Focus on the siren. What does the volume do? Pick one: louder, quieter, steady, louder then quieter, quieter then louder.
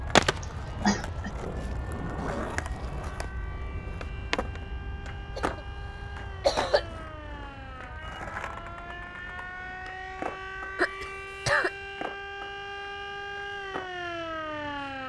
louder.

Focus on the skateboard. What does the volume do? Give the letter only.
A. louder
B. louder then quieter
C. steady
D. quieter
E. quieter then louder
D.